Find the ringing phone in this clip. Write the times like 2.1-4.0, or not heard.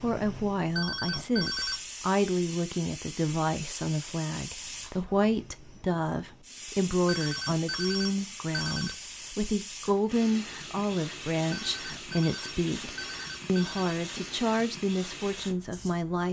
0.8-1.8, 7.0-8.9, 11.5-13.9.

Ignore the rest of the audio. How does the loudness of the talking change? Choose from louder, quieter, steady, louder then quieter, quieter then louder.
steady.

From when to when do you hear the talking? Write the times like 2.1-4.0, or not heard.
0.0-16.2.